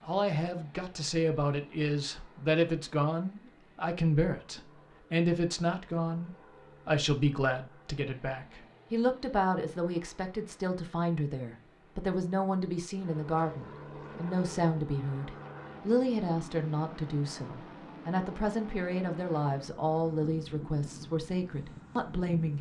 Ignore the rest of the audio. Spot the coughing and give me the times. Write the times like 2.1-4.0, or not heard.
not heard.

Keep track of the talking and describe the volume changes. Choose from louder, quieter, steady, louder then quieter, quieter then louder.
steady.